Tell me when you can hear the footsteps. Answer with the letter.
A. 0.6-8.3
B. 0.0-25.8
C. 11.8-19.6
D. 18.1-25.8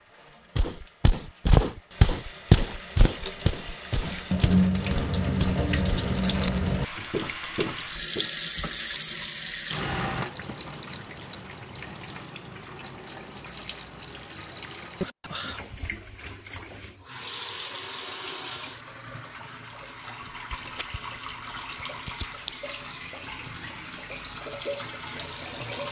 A.